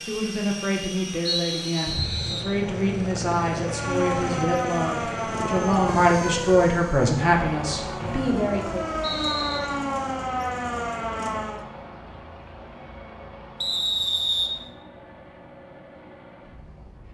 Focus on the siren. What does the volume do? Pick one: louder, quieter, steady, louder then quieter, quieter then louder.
quieter then louder.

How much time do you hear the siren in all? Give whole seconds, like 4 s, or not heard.
8 s.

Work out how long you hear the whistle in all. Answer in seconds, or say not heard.
4 s.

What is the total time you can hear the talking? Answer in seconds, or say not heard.
9 s.